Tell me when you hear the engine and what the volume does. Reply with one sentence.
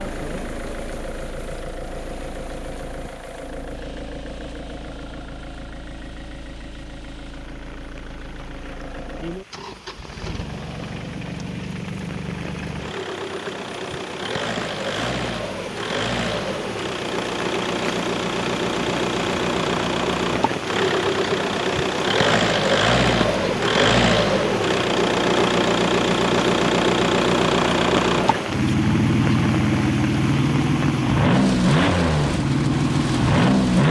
The engine can be heard from 0.0 to 33.8 s, getting louder.